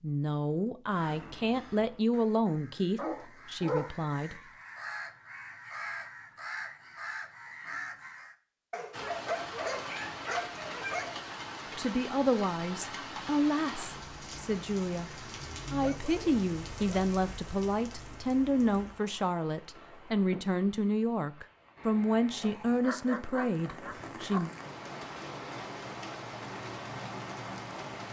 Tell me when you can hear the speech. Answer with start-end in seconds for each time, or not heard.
0.0-4.4, 11.8-24.5.